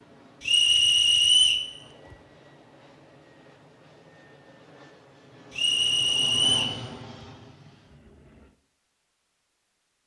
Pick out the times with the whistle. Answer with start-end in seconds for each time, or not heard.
0.4-1.6, 5.5-6.8.